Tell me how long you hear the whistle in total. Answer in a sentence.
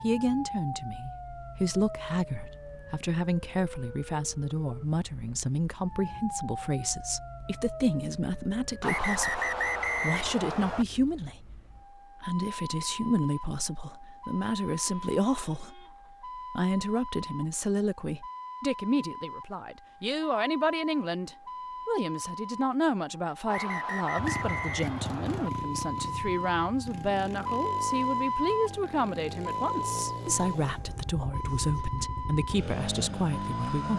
You can hear the whistle for 4 seconds altogether.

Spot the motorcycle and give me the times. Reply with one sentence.
You can hear the motorcycle from 24.1 to 33.9 s.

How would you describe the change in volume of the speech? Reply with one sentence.
The loudness of the speech stays about the same.